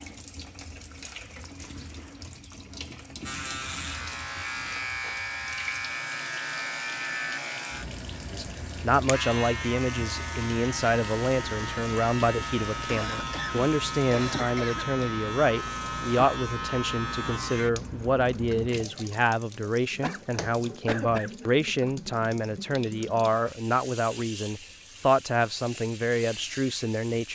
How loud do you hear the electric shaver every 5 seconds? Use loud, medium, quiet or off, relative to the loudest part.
loud, loud, loud, loud, off, off.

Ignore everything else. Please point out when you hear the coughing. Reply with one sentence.
You can hear the coughing from 1.5 to 2.3 s, from 12.8 to 15.2 s and from 20.0 to 21.4 s.